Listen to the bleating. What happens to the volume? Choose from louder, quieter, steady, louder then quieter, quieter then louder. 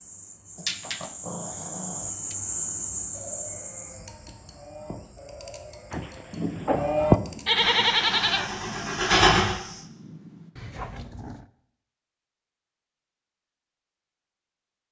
louder.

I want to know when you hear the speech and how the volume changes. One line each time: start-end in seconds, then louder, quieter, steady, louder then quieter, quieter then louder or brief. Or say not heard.
not heard.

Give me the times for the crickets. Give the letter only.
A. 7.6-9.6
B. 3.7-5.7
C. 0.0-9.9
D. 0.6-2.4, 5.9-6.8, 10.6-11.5
C.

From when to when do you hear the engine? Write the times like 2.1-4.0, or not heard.
7.6-9.6.